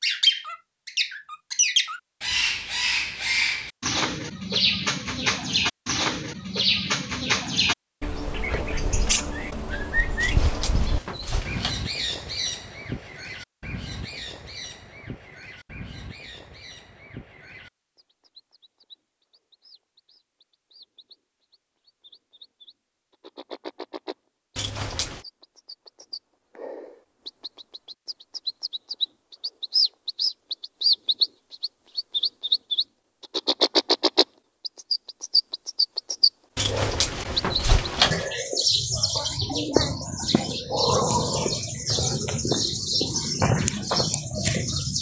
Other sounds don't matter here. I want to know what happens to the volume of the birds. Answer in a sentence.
The volume of the birds goes down, then up.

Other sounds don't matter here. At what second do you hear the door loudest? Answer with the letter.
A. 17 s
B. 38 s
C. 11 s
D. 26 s
B.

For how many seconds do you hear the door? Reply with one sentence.
The door can be heard for 4 seconds in total.